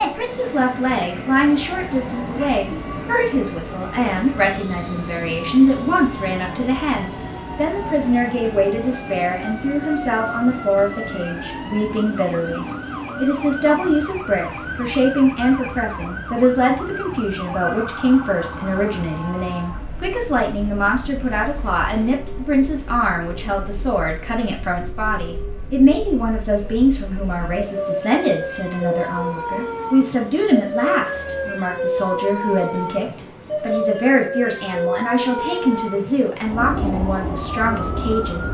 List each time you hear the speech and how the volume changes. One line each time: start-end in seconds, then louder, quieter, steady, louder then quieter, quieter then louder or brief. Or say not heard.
0.0-38.5 steady.